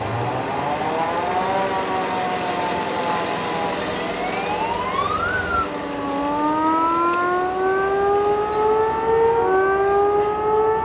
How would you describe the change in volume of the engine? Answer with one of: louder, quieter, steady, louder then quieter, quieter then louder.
quieter.